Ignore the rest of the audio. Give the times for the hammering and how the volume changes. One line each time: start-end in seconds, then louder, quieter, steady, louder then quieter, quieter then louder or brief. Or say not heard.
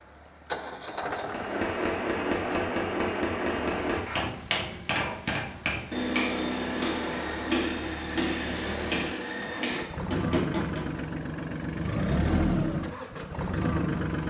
1.2-10.8 steady.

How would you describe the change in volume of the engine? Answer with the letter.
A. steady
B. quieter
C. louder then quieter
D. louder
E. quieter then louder
E.